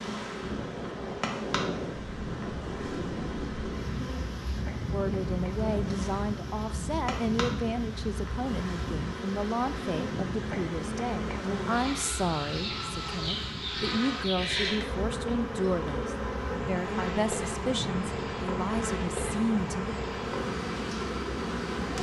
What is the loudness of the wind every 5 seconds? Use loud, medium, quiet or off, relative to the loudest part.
loud, loud, medium, medium, medium.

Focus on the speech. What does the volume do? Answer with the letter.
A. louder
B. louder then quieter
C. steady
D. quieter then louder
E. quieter
C.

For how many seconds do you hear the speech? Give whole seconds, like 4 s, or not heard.
15 s.